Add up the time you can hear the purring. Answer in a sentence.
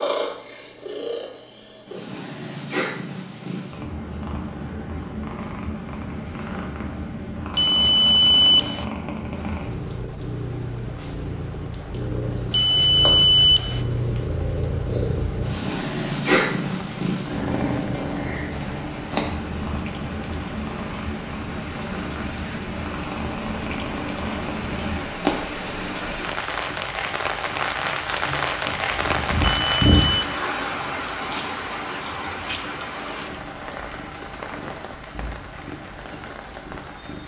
You can hear the purring for 37 seconds altogether.